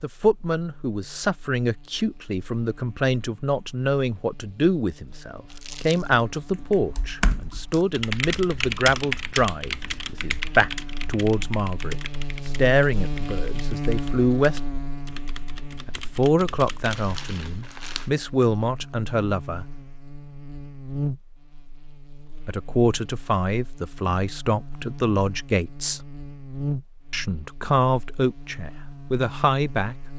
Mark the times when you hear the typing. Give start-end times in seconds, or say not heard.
6.5-17.1.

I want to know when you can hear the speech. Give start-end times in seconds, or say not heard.
0.0-14.6, 15.8-19.6, 22.4-26.0, 27.1-29.9.